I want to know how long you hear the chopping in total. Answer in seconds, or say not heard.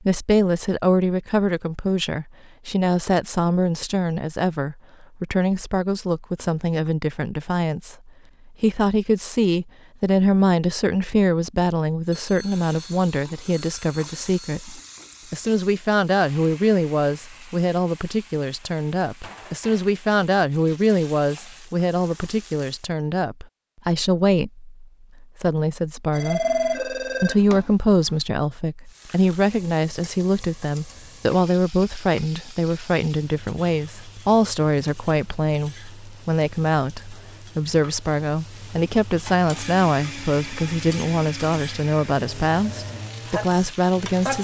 not heard.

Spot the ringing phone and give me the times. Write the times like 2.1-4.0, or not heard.
12.1-14.5, 26.1-28.1.